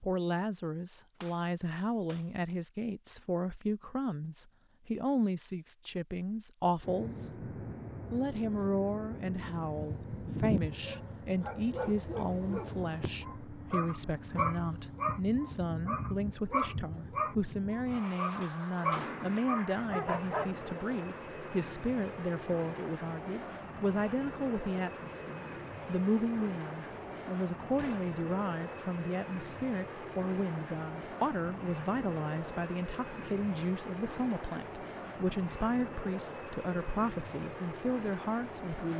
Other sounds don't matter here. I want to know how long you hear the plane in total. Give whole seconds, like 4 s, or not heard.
32 s.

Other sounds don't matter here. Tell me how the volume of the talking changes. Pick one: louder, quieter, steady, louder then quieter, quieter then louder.
steady.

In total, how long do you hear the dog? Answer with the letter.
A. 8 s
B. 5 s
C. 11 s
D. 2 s
C.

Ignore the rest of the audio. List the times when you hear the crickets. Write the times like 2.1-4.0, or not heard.
not heard.